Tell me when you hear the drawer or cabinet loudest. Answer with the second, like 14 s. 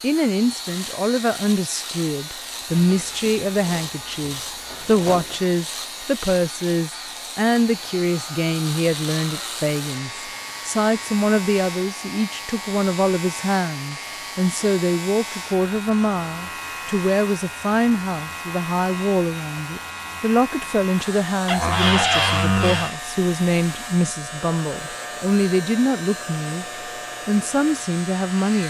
22 s.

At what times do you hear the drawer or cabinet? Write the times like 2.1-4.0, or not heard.
2.6-5.4, 21.4-22.9.